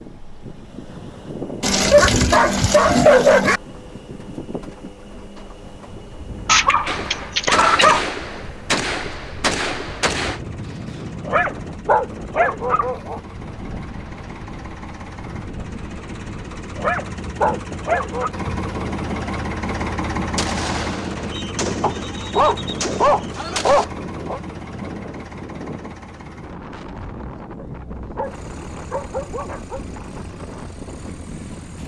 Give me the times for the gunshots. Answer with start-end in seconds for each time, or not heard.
6.8-10.4, 20.4-23.9.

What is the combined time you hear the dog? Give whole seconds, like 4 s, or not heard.
12 s.